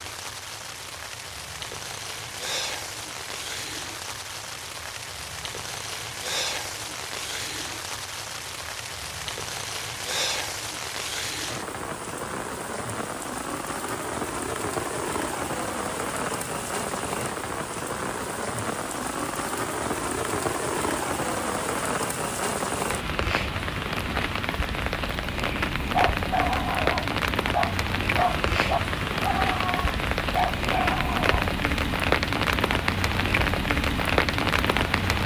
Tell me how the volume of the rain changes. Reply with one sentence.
The volume of the rain goes up.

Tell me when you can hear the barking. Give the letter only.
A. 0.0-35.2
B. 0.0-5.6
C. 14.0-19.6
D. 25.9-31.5
D.